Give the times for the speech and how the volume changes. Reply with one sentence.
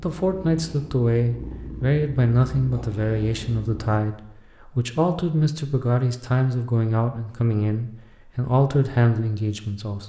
You can hear the speech from 0.0 to 10.0 s, at a steady volume.